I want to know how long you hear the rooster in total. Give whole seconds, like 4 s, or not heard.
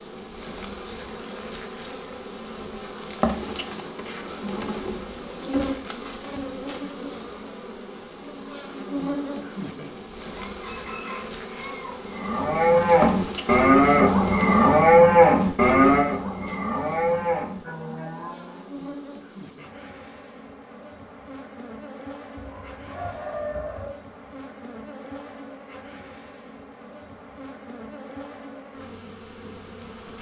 3 s.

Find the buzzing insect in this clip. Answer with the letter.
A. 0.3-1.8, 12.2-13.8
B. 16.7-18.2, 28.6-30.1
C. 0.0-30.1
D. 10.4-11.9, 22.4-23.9
C.